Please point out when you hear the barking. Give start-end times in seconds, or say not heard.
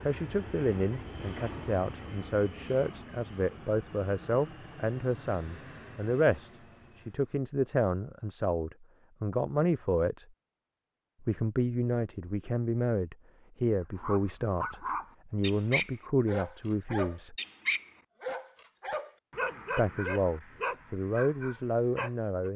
13.9-22.5.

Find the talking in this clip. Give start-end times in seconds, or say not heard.
0.1-10.2, 11.2-17.4, 19.8-22.5.